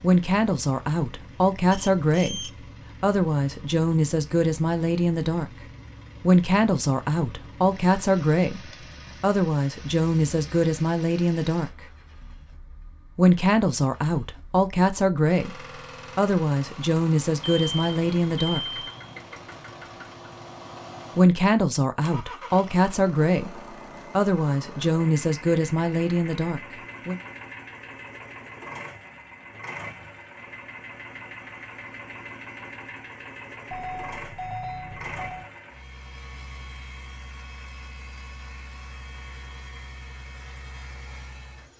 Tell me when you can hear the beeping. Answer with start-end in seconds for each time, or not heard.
1.7-2.5, 17.4-19.4, 33.7-35.5.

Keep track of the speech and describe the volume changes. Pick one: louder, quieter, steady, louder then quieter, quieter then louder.
steady.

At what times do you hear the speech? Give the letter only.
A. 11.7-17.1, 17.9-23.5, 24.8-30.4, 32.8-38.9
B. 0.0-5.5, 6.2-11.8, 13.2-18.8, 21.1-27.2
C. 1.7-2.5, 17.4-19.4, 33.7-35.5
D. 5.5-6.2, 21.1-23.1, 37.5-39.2
B.